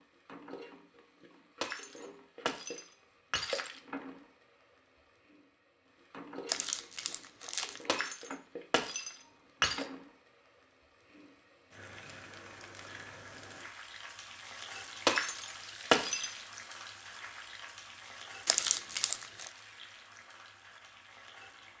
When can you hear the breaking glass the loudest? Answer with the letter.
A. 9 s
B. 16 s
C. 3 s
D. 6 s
B.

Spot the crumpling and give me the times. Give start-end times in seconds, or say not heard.
6.5-7.9, 18.4-19.5.